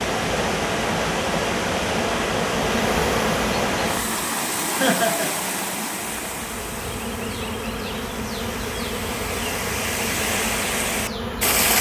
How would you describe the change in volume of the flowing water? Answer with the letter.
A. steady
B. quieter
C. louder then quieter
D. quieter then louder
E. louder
D.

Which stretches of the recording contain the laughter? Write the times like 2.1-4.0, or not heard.
4.8-5.3.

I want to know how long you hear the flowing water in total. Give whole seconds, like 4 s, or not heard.
12 s.